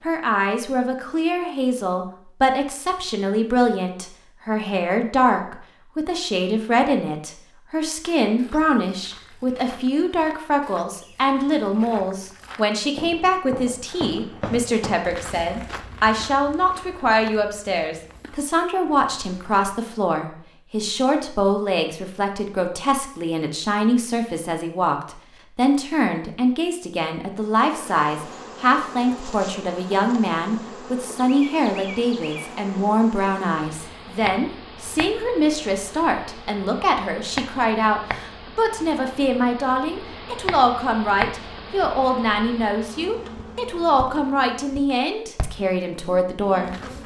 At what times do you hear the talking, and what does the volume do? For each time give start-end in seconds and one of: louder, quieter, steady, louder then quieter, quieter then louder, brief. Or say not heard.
0.0-46.7 steady.